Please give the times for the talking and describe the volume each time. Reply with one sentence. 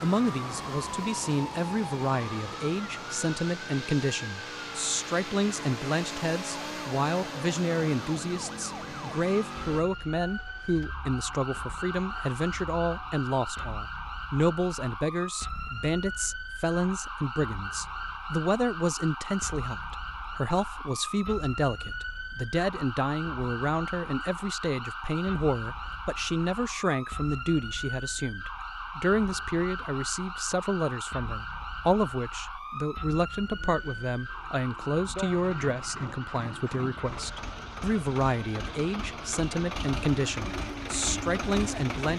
You can hear the talking from 0.0 to 42.1 s, at a steady volume.